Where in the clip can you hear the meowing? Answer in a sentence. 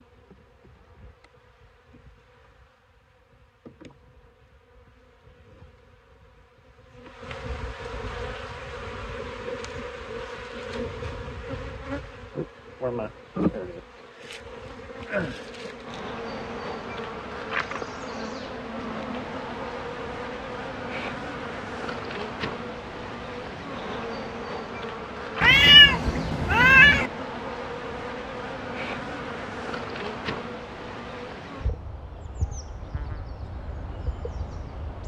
The meowing can be heard from 25.4 to 27.1 s.